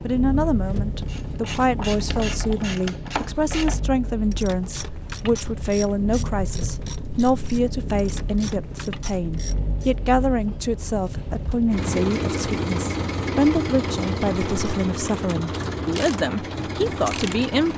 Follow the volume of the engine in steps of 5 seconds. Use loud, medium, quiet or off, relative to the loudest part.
medium, medium, loud, loud.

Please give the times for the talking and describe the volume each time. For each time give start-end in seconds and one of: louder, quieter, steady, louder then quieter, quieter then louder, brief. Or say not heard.
0.0-17.7 steady.